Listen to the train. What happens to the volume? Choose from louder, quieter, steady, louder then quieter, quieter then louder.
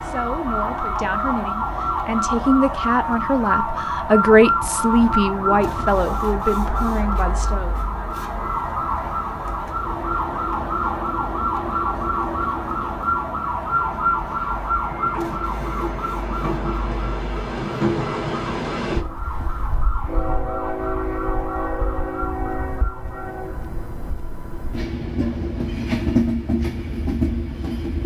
louder.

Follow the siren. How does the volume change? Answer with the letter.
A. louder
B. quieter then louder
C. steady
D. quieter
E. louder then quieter
D.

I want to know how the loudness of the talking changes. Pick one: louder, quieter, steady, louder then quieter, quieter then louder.
louder then quieter.